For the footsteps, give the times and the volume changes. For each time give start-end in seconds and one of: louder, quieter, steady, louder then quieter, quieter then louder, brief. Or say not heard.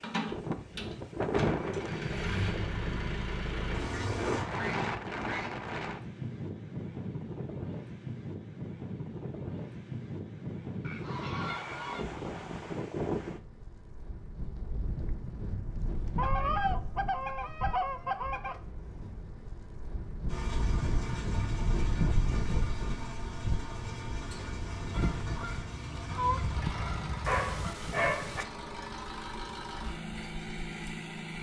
not heard.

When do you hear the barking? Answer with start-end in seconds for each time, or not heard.
27.2-28.4.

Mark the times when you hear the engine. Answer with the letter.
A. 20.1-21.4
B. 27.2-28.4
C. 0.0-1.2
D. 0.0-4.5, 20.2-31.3
D.